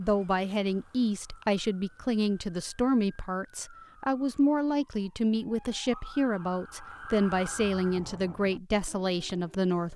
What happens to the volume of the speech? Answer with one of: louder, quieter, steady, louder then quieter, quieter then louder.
steady.